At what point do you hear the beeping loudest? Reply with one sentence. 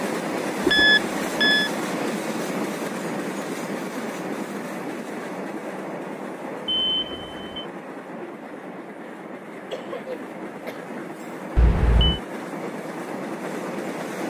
The loudest moment of the beeping is at 1 second.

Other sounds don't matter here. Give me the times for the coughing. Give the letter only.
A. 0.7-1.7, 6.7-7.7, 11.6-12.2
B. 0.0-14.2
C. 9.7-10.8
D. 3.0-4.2
C.